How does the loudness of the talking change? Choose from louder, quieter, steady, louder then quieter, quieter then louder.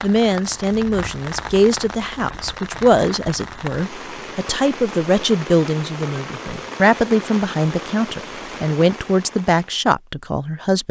steady.